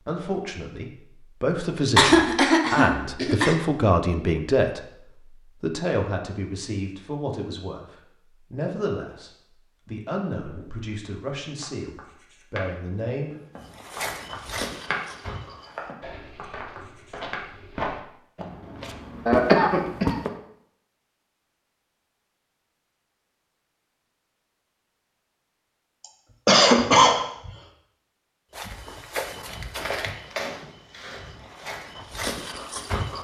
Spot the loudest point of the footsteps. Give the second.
19 s.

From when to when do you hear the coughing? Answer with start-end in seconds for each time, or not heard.
1.9-3.5, 19.2-20.1, 26.4-27.5.